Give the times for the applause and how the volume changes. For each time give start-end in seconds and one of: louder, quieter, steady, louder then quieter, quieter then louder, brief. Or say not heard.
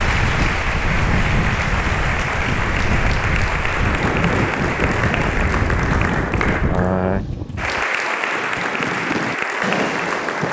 0.0-10.4 steady.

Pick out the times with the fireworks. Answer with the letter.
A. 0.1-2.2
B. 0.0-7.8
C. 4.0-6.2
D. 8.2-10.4
D.